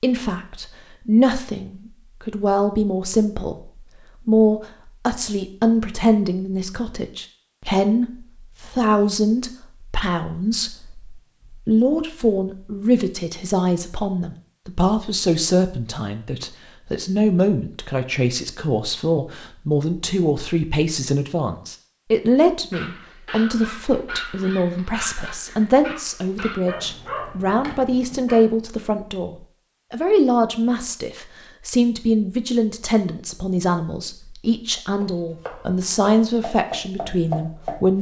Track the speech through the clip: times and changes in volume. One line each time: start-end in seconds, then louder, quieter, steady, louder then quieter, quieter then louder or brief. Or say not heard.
0.0-37.9 steady.